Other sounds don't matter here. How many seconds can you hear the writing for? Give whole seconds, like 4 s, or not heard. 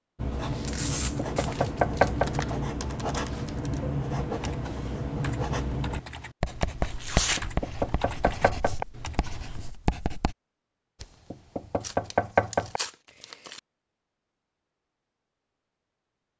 10 s.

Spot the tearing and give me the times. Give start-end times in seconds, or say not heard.
0.7-2.2, 6.8-7.4, 11.8-13.6.